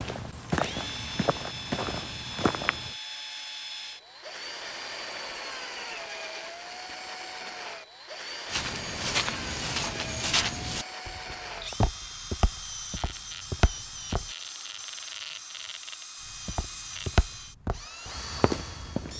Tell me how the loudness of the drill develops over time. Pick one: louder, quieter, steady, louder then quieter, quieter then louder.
steady.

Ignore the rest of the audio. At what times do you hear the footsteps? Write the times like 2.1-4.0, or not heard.
0.0-2.9, 8.5-14.3, 16.4-19.1.